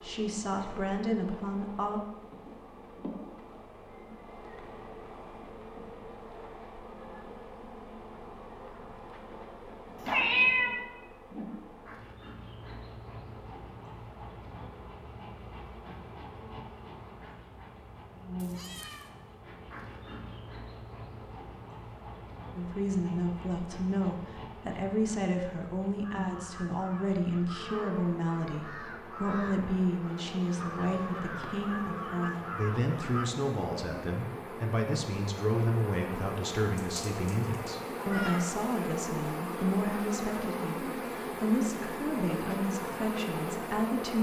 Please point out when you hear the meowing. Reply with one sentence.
You can hear the meowing from 10.0 to 10.8 s, from 18.4 to 19.1 s and from 36.8 to 38.4 s.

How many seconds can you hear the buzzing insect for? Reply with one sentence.
The buzzing insect can be heard for 44 seconds in total.